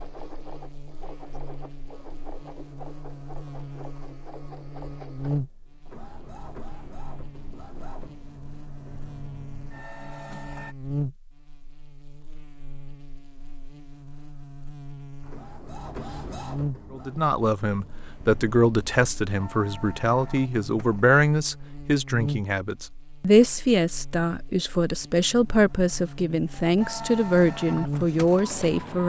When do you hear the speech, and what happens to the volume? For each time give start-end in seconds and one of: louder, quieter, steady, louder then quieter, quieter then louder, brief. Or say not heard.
16.9-29.0 steady.